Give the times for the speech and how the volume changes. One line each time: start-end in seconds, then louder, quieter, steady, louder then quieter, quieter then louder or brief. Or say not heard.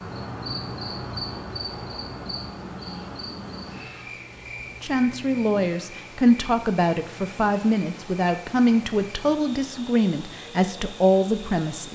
4.8-11.8 steady.